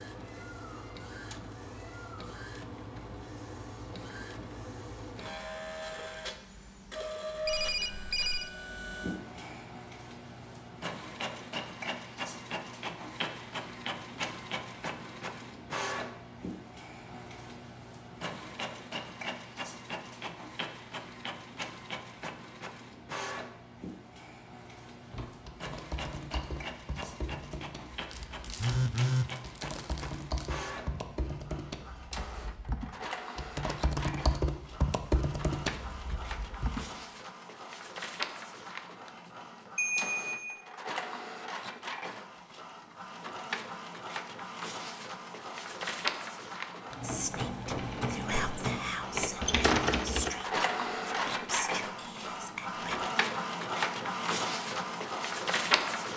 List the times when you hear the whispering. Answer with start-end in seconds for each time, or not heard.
47.0-53.1.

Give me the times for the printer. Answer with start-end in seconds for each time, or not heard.
0.0-56.1.